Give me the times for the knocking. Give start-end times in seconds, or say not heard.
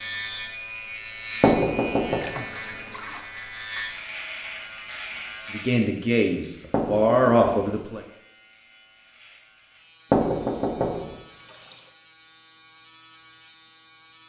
1.4-2.2, 6.7-7.8, 10.1-11.2.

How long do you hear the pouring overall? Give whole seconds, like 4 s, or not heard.
2 s.